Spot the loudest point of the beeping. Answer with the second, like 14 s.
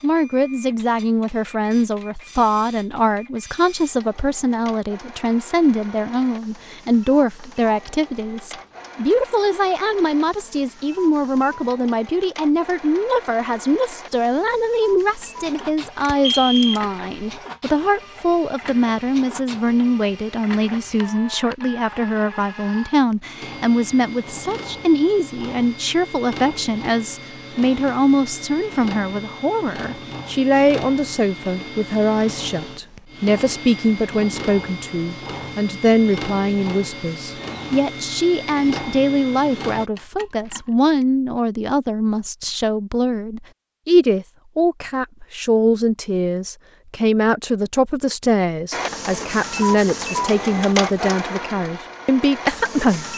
16 s.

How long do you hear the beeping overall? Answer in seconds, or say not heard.
3 s.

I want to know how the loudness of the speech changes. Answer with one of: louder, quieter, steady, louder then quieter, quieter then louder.
steady.